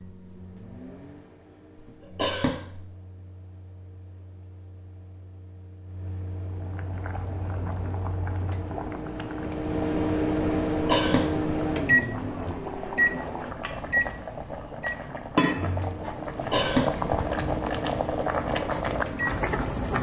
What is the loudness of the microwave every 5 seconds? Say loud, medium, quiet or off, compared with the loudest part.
quiet, medium, loud, medium.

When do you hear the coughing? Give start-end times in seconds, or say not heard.
1.8-2.9, 10.7-11.5, 16.4-17.1.